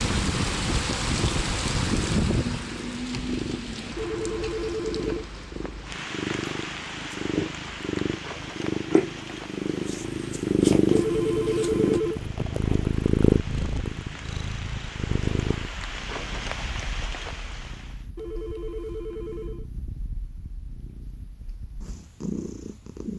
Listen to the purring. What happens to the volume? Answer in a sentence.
The loudness of the purring goes up, then down.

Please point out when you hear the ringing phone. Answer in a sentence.
You can hear the ringing phone from 4.0 to 5.3 s, from 10.9 to 12.2 s and from 18.1 to 19.6 s.